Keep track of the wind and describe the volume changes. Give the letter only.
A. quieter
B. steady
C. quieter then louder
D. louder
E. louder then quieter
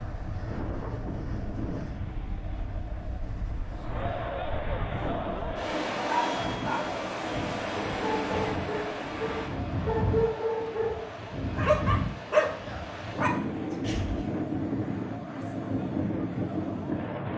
D.